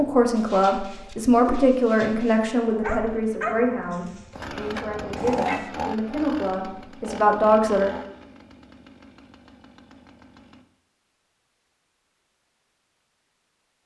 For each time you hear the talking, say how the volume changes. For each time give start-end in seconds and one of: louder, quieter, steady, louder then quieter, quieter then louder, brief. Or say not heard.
0.0-7.9 quieter then louder.